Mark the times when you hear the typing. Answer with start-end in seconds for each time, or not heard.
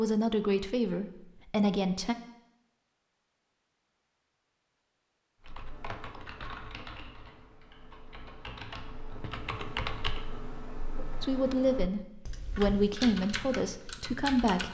5.5-14.6.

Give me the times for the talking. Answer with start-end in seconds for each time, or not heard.
0.0-2.1, 11.2-14.6.